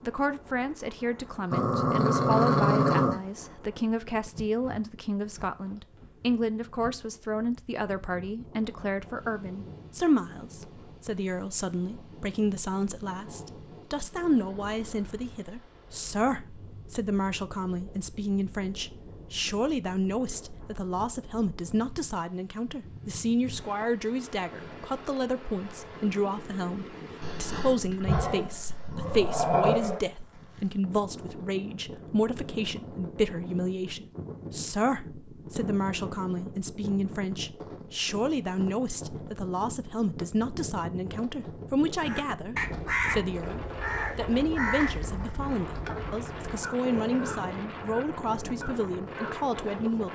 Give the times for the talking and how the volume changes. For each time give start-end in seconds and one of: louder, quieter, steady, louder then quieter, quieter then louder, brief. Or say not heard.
0.0-50.1 steady.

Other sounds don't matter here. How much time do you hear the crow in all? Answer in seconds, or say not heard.
7 s.